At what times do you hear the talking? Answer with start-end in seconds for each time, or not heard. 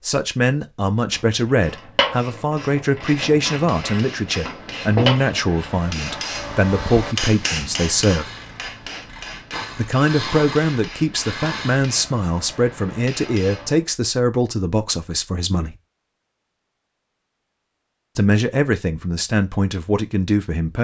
0.0-8.3, 9.8-15.8, 18.1-20.7.